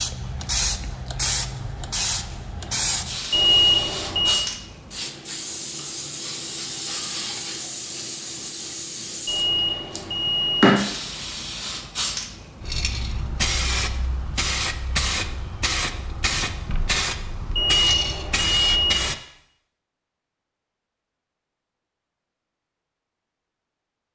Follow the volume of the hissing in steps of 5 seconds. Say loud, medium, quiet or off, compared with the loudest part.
loud, medium, loud, loud, off.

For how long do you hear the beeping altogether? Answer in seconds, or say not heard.
4 s.